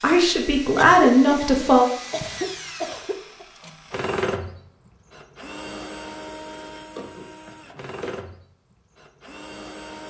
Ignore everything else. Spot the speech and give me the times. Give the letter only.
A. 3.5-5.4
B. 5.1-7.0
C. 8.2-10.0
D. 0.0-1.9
D.